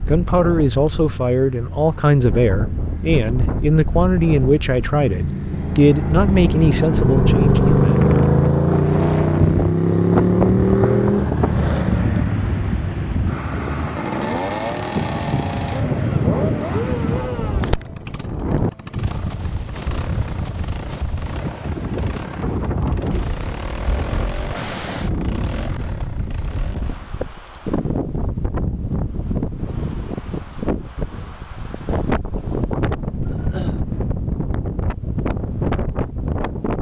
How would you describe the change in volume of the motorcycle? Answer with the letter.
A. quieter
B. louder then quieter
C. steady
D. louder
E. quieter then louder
B.